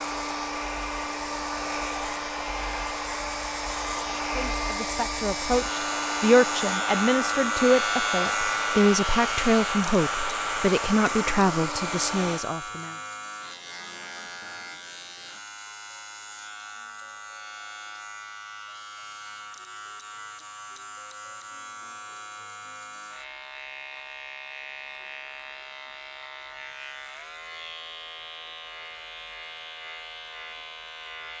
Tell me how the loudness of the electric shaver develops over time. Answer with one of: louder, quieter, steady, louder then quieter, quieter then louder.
louder then quieter.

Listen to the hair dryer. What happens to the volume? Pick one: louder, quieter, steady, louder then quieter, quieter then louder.
steady.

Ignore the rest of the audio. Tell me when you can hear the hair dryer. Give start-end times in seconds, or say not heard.
0.0-12.4.